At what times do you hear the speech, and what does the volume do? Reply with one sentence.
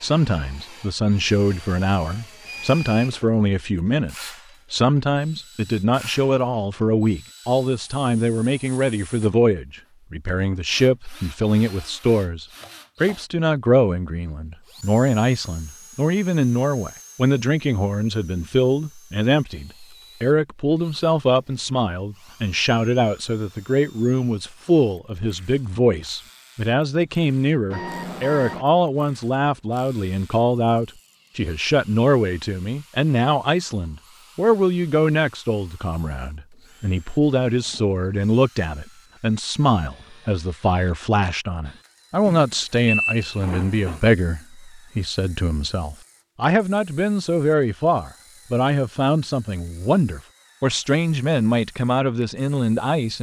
You can hear the speech from 0.0 to 53.1 s, at a steady volume.